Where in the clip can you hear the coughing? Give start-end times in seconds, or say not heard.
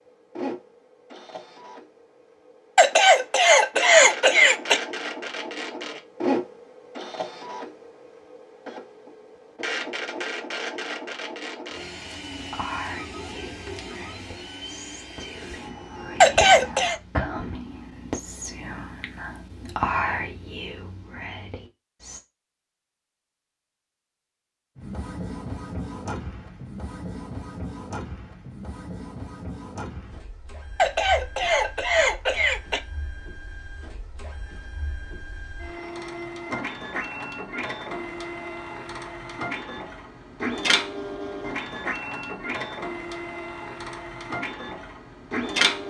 2.8-4.8, 16.2-16.9, 30.8-32.8.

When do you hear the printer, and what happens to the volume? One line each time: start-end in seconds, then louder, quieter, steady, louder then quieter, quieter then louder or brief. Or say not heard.
0.0-16.9 louder then quieter
24.8-45.8 quieter then louder.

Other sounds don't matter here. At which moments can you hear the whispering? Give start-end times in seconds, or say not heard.
12.3-22.2.